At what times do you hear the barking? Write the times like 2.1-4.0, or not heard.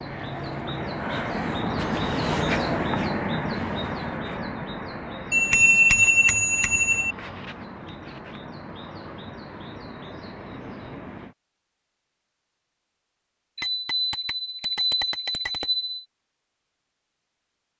not heard.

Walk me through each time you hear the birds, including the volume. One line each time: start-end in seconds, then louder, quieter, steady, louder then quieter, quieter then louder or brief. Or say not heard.
0.0-11.3 quieter.